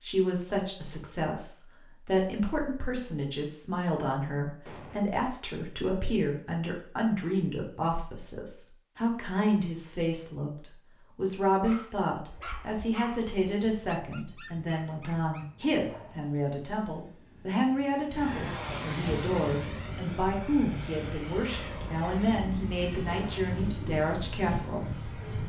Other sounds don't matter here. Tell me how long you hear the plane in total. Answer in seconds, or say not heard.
11 s.